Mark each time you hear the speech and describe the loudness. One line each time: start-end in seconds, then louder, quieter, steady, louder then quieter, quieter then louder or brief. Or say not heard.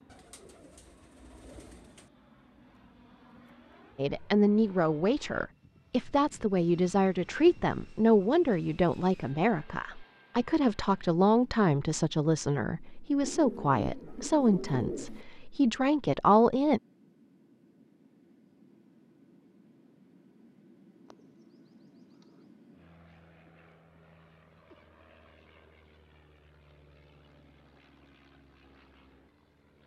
4.0-16.8 steady.